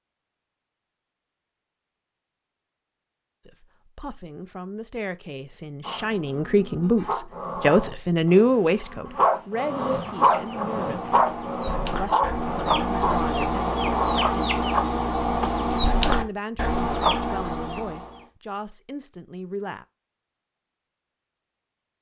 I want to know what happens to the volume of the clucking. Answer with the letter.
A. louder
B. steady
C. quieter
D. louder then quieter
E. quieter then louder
A.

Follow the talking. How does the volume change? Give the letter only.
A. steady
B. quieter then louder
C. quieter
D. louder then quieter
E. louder
D.